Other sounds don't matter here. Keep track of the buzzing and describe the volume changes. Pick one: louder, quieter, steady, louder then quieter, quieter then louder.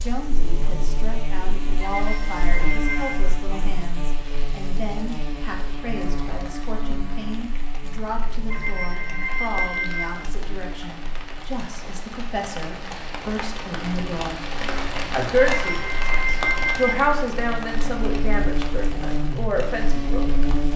quieter then louder.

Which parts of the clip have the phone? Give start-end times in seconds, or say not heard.
1.8-3.2, 8.5-10.1, 15.6-16.9.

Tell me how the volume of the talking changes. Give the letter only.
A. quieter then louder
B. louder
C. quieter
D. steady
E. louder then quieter
B.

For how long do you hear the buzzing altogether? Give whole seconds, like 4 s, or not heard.
21 s.